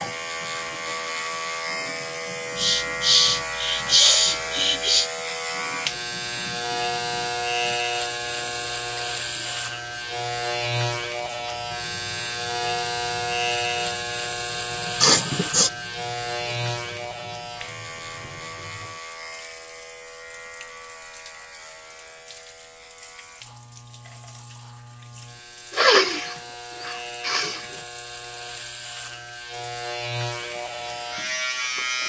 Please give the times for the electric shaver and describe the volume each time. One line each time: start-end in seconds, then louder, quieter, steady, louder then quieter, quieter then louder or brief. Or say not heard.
0.0-32.0 quieter then louder.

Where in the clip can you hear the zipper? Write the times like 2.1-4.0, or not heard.
not heard.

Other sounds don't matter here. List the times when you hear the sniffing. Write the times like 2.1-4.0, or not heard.
2.5-5.1, 15.0-15.7, 25.7-27.6.